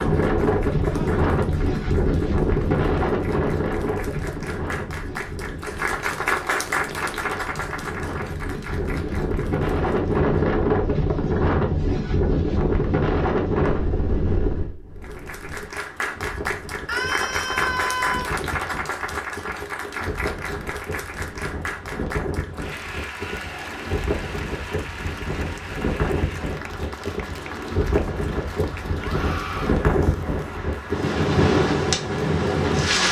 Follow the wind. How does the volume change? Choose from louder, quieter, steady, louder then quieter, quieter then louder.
quieter then louder.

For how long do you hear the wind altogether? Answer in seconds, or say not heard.
33 s.